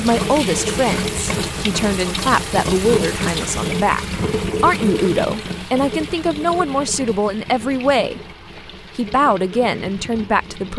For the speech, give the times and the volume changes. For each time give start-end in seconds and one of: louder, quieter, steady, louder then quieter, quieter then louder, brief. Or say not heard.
0.0-8.2 steady
8.9-10.7 brief.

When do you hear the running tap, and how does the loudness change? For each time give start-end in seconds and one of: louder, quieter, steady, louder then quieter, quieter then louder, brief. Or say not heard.
0.0-10.7 quieter.